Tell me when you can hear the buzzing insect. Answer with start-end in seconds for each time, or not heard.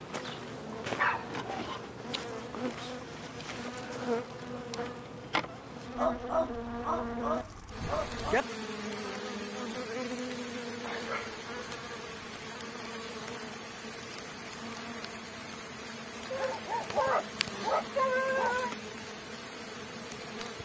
0.0-20.6.